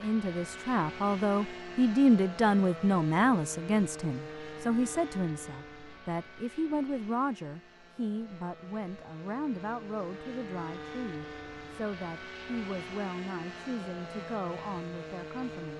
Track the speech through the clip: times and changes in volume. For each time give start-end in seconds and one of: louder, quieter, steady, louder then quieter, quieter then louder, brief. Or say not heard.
0.0-15.7 quieter.